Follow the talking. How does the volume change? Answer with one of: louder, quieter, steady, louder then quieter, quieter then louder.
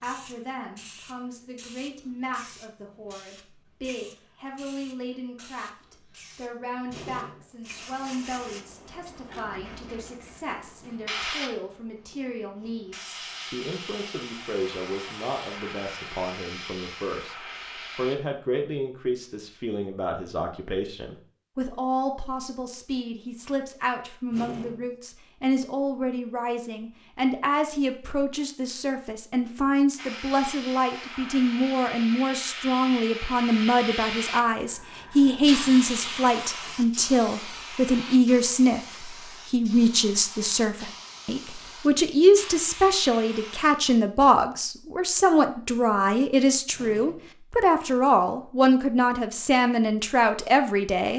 louder.